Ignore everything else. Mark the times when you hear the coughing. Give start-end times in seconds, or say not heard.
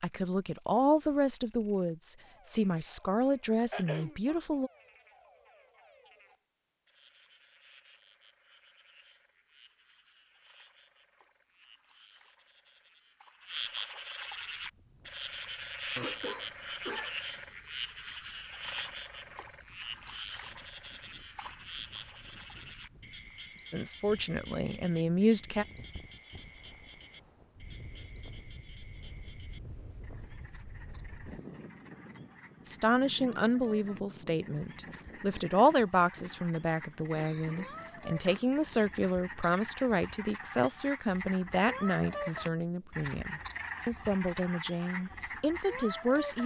3.7-4.4, 15.9-17.2, 37.1-38.5.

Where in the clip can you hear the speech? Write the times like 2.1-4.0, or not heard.
0.0-4.7, 23.7-25.6, 32.6-46.4.